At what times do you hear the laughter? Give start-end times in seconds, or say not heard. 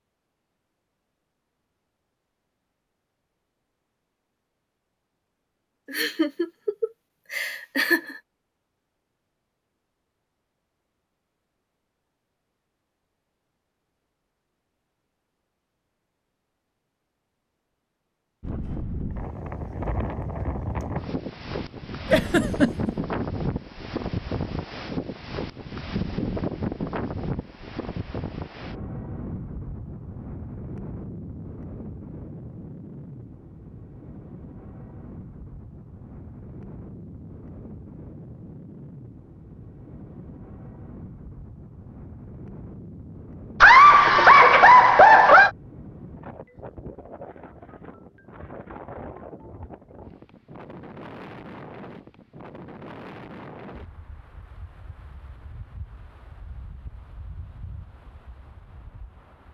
5.9-8.2, 22.1-22.9, 43.6-45.5.